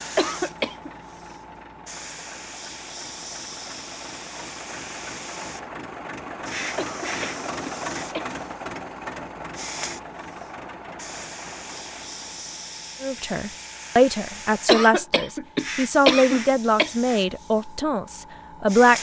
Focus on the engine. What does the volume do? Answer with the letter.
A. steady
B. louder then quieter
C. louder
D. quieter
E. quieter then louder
B.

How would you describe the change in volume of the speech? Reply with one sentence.
The volume of the speech goes down.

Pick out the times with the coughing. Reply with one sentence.
The coughing can be heard from 0.1 to 0.9 s, from 6.8 to 8.3 s and from 14.7 to 16.9 s.